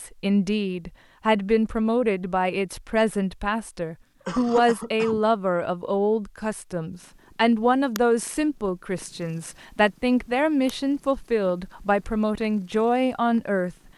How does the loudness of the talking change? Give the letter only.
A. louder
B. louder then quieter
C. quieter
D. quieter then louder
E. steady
E.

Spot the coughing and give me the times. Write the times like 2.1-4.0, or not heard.
4.2-5.2.